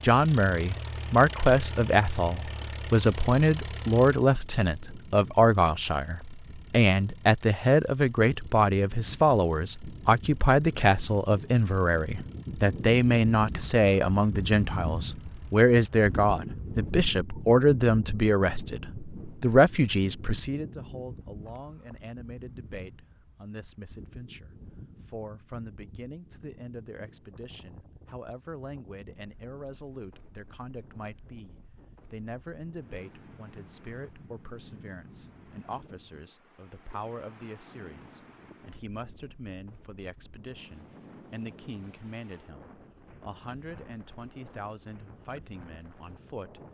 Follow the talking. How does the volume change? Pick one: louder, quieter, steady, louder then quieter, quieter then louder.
quieter.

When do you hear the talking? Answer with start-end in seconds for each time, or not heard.
0.0-46.6.